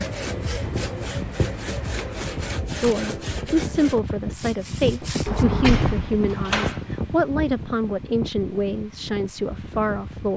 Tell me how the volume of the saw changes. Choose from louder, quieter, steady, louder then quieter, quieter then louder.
quieter.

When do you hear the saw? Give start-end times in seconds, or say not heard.
0.0-5.5.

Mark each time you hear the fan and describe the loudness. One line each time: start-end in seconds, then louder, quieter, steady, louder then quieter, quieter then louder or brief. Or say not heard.
0.1-10.3 louder then quieter.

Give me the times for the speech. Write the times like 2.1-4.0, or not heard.
2.8-10.3.